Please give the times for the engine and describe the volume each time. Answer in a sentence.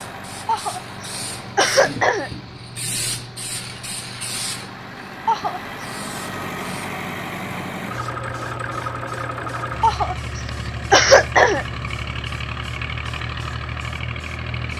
You can hear the engine from 0.0 to 14.7 s, getting louder.